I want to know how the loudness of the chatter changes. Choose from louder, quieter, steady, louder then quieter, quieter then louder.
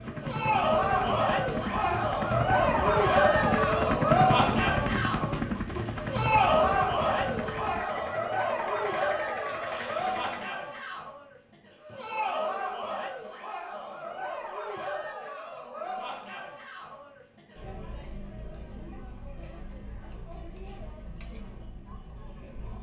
quieter.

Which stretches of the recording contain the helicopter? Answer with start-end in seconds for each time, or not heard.
0.0-10.4.